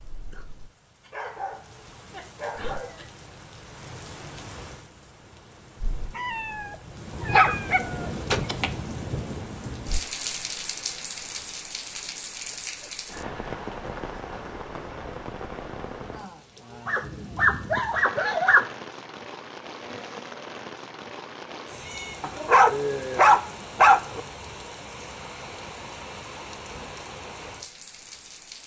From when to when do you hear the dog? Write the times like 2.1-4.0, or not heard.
1.0-3.0, 7.3-8.7, 16.9-18.7, 22.2-24.2.